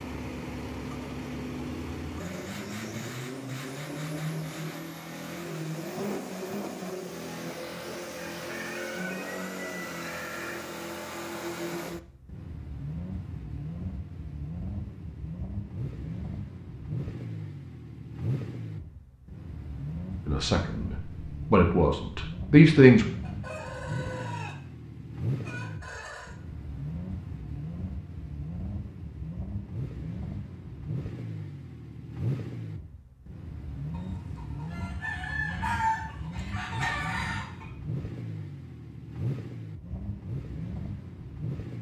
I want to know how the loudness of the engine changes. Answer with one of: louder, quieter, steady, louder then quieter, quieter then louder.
steady.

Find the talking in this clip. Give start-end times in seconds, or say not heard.
20.2-23.1.